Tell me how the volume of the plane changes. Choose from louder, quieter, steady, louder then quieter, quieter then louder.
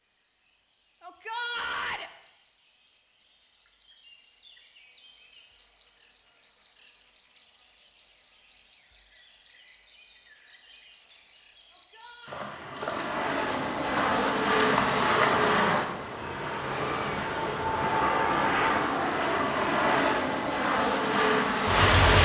steady.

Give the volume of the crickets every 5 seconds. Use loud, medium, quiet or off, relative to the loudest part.
medium, loud, loud, medium, medium.